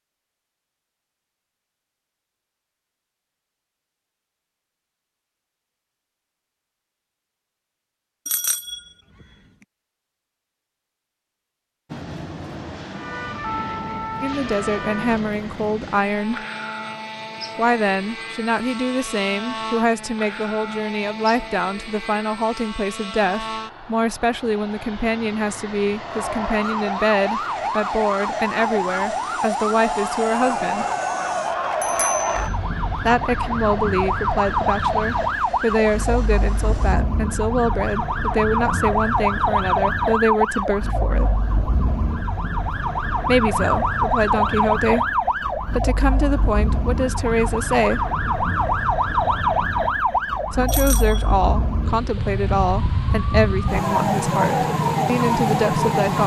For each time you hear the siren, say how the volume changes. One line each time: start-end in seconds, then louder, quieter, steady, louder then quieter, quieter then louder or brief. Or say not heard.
12.9-15.2 brief
26.0-56.2 steady.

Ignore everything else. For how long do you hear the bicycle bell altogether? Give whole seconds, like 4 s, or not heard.
2 s.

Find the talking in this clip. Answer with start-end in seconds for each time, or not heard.
14.2-16.4, 17.6-30.9, 33.0-41.5, 43.2-48.0, 50.5-56.2.